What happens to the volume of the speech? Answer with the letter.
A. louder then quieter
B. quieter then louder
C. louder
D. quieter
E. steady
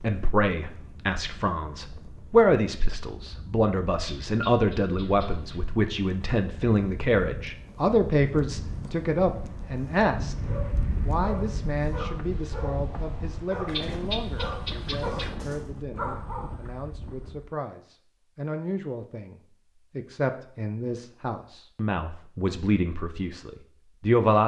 B.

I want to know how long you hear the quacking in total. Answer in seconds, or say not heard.
3 s.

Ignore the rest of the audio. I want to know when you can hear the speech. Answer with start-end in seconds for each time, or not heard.
0.0-10.3, 11.0-24.4.